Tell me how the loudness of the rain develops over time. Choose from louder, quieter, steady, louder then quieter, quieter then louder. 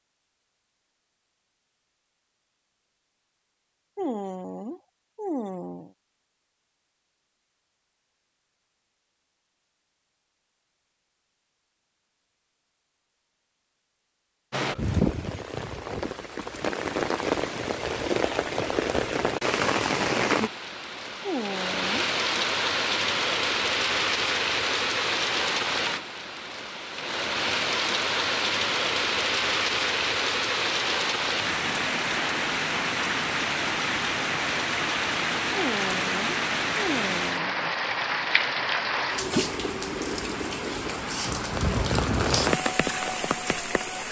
steady.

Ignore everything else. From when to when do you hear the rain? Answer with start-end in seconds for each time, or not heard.
14.5-44.0.